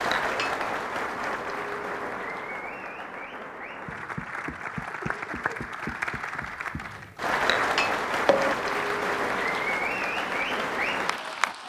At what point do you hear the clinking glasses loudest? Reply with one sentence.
The loudest moment of the clinking glasses is at 8 seconds.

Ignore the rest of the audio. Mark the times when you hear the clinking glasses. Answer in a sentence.
The clinking glasses can be heard from 0.1 to 0.6 s and from 7.5 to 8.6 s.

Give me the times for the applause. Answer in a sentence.
You can hear the applause from 0.0 to 11.6 s.